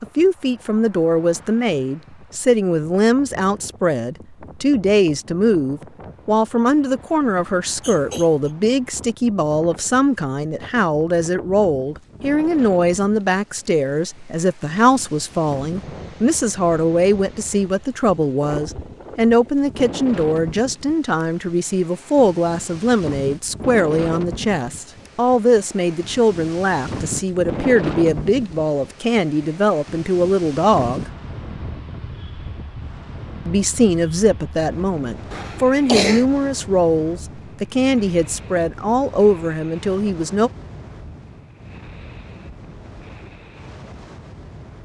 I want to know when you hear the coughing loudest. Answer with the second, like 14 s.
36 s.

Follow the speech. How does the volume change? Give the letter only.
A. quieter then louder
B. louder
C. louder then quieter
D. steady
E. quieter
D.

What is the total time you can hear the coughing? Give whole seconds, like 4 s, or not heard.
2 s.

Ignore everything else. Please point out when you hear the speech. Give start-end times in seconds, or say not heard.
0.0-31.1, 33.5-40.5.